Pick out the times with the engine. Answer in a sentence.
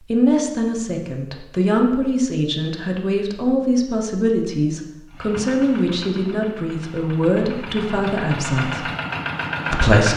You can hear the engine from 5.1 to 10.1 s.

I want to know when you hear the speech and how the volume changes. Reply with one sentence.
You can hear the speech from 0.1 to 8.8 s, at a steady volume; and briefly from 9.7 to 10.1 s.